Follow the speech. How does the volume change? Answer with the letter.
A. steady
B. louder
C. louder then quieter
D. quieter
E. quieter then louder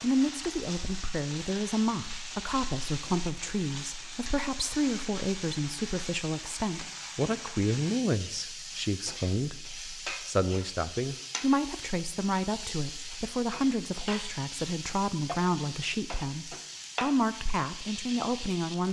A.